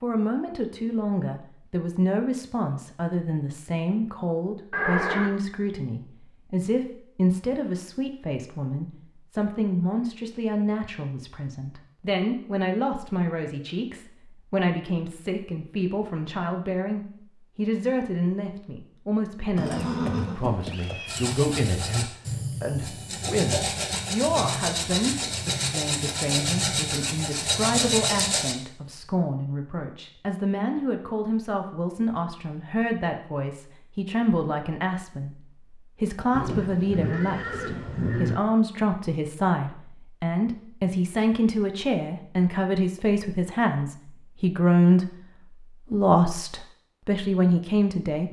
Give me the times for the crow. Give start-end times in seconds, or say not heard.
not heard.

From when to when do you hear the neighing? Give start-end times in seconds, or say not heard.
4.7-5.3, 19.6-21.3, 36.3-38.4.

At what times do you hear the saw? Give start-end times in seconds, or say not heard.
21.1-28.6.